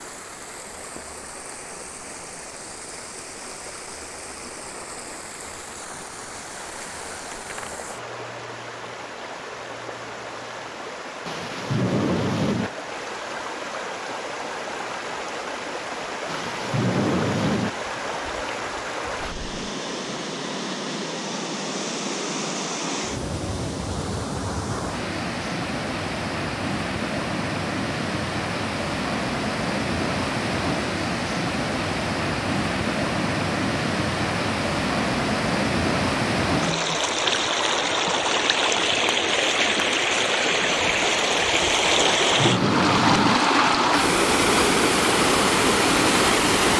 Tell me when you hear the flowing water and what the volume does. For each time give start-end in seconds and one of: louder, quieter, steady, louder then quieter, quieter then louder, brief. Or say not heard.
0.0-46.7 louder.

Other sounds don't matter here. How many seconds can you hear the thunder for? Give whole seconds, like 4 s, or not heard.
4 s.